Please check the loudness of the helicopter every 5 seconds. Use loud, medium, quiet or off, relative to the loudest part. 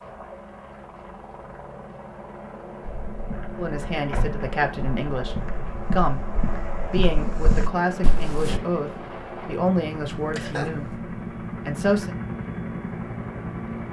medium, loud, loud.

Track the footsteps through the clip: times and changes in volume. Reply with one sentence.
The footsteps can be heard from 2.8 to 8.6 s, getting louder.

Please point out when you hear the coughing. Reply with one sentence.
You can hear the coughing from 10.1 to 10.9 s.